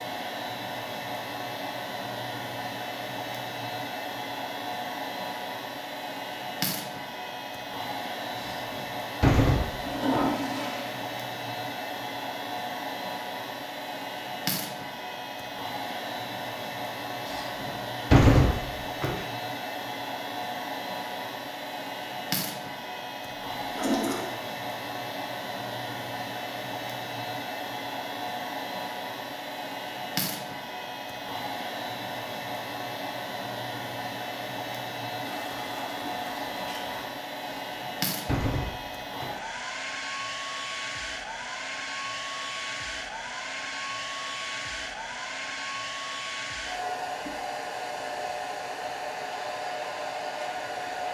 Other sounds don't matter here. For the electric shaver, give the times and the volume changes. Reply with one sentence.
The electric shaver can't be heard in this clip.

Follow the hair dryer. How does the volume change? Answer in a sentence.
The volume of the hair dryer stays about the same.